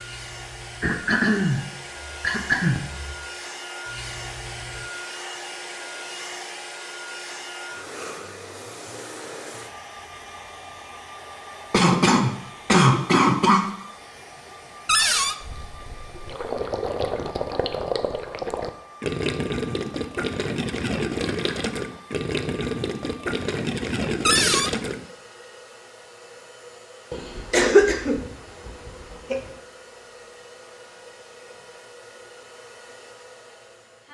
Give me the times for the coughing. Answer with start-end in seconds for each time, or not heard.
0.8-3.1, 11.7-13.7, 27.1-29.4.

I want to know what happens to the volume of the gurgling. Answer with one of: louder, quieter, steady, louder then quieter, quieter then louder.
steady.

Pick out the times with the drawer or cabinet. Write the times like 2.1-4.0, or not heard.
14.8-15.3, 24.2-24.7.